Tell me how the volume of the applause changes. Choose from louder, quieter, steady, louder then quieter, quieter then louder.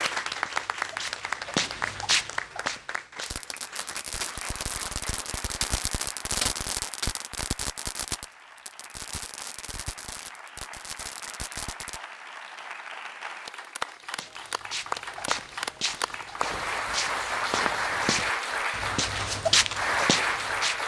quieter then louder.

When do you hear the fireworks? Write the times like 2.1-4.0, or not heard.
3.2-12.0.